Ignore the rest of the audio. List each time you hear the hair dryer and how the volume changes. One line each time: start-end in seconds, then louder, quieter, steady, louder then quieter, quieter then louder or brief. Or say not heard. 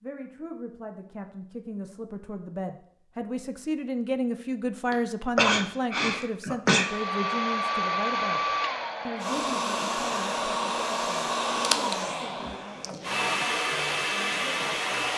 6.7-15.1 steady.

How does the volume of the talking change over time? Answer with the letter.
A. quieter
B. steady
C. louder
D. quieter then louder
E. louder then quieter
E.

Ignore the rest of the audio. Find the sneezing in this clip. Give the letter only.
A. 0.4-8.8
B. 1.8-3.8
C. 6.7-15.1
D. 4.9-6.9
D.